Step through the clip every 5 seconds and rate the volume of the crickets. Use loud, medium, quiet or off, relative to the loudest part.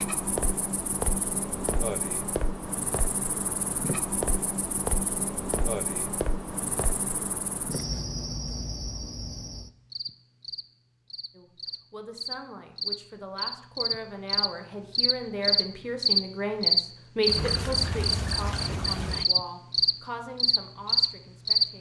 medium, medium, medium, loud, loud.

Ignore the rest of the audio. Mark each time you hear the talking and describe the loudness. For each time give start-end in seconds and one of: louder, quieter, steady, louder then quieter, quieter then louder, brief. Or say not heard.
11.3-21.7 louder then quieter.